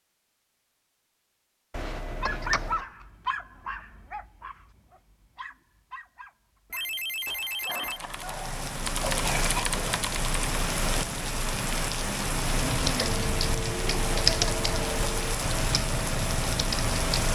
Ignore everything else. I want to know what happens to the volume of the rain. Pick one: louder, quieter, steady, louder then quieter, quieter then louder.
steady.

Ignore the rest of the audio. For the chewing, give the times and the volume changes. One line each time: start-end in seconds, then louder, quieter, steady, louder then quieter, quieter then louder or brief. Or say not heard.
not heard.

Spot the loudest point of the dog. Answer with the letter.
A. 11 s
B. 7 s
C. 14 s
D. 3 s
D.